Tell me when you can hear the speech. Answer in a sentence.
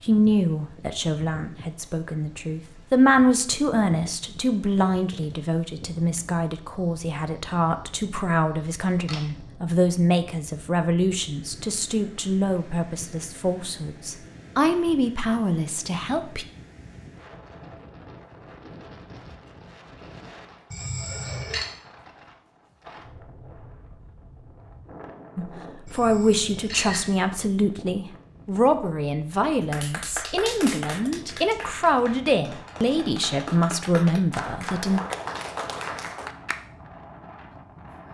You can hear the speech from 0.0 to 16.4 s and from 25.4 to 35.0 s.